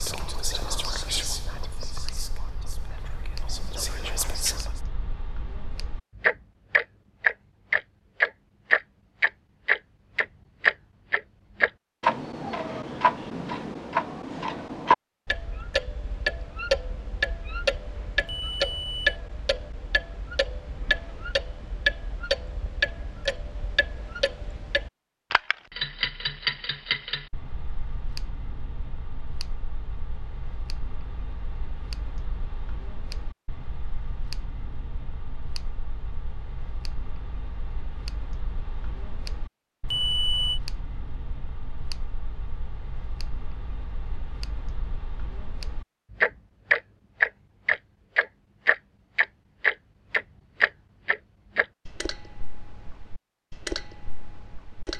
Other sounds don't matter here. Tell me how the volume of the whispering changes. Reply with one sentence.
The loudness of the whispering goes down, then up.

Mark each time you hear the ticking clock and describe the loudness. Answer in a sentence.
You can hear the ticking clock from 0.0 to 54.9 s, getting quieter then louder.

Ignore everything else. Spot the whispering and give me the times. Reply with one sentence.
The whispering can be heard from 0.0 to 4.8 s.